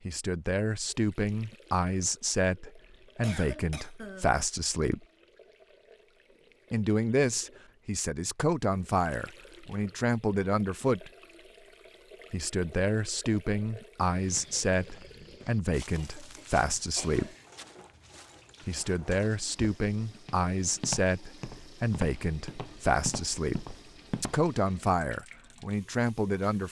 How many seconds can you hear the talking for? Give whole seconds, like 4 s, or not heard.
22 s.